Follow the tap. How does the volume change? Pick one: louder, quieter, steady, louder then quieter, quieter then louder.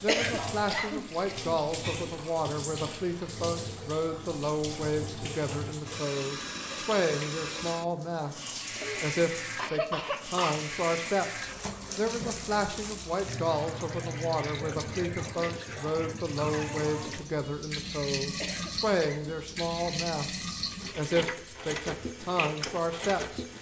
steady.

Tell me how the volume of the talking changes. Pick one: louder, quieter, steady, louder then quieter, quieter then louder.
steady.